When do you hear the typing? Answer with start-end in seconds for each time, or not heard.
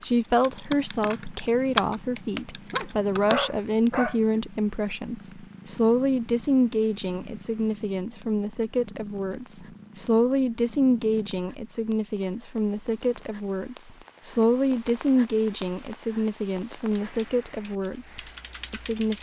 0.0-3.4, 17.0-19.1.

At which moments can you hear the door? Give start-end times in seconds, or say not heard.
not heard.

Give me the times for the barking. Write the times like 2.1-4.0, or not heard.
2.7-4.4.